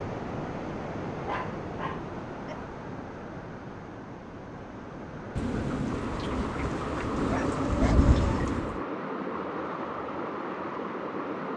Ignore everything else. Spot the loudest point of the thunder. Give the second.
8 s.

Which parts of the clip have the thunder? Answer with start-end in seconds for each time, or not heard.
5.3-8.8.